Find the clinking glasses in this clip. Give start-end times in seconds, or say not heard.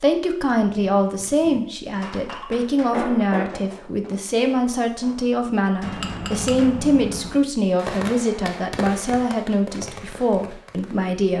2.1-3.6, 5.8-7.3.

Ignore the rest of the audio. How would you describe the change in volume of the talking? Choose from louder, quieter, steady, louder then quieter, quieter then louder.
steady.